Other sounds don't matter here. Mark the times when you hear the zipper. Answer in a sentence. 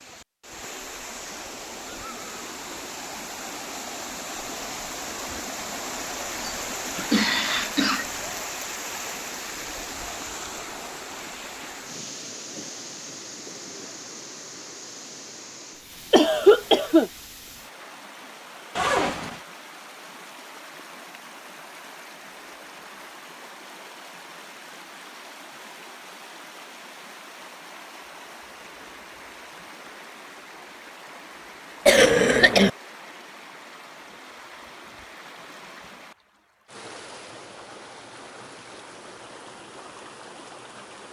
You can hear the zipper from 18.8 to 19.4 s.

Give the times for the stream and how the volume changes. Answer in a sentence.
The stream can be heard from 0.0 to 41.0 s, getting quieter.